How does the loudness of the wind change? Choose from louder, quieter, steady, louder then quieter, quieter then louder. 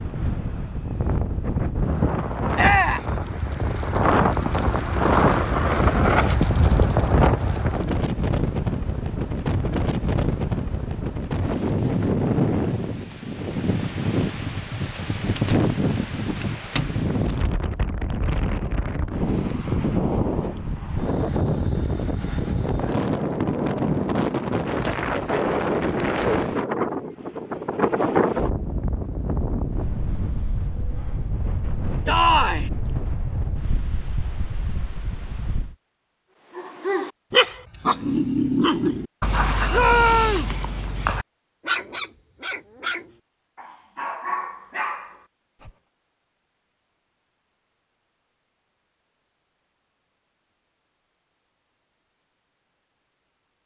quieter.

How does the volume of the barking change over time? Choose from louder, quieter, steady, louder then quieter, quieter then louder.
quieter.